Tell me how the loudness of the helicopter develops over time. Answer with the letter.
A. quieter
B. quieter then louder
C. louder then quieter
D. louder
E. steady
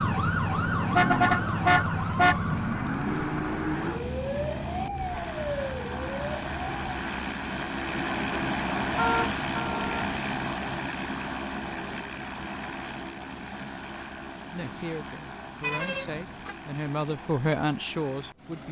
C.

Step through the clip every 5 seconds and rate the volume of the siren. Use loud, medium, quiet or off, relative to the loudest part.
loud, medium, off, off.